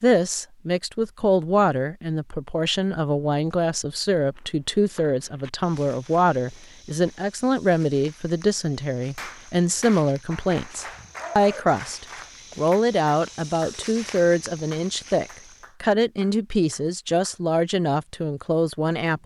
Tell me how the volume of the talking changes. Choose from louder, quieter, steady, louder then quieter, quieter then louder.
steady.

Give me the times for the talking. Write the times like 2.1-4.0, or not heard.
0.0-19.2.